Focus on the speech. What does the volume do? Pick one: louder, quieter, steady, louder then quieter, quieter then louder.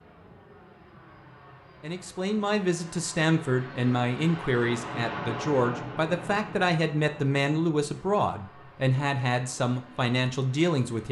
steady.